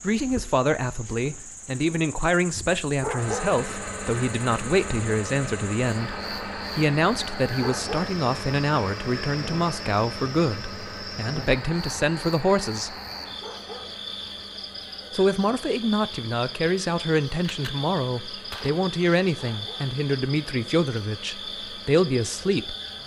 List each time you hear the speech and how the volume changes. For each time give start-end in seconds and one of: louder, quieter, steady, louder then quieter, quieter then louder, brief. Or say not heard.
0.0-12.9 steady
15.1-22.8 steady.